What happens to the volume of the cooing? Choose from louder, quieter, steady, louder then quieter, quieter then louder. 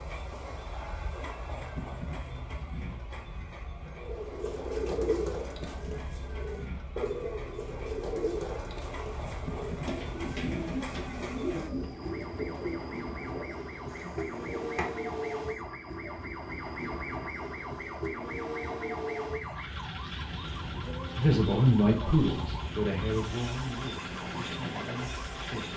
quieter.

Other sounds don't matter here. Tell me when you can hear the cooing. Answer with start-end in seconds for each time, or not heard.
4.0-16.2.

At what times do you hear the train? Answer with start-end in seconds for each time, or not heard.
0.0-25.7.